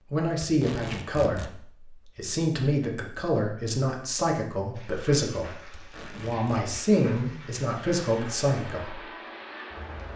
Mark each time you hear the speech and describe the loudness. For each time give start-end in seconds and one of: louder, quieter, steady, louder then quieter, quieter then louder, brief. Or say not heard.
0.1-9.1 steady.